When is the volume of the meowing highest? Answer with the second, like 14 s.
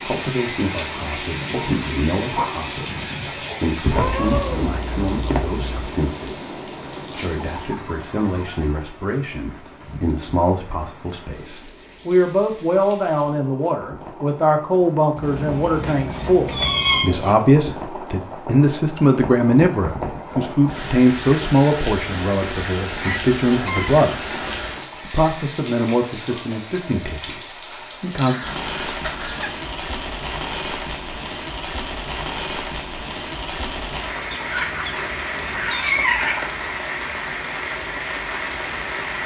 17 s.